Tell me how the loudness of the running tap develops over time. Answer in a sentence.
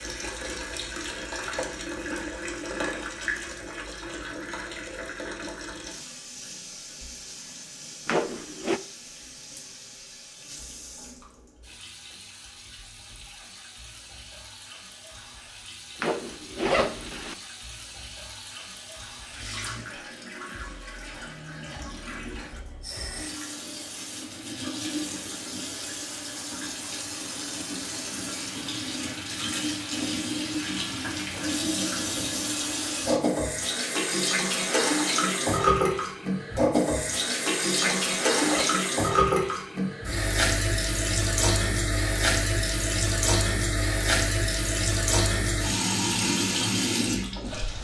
The loudness of the running tap goes down, then up.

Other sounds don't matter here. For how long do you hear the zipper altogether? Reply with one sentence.
The zipper can be heard for 3 seconds in total.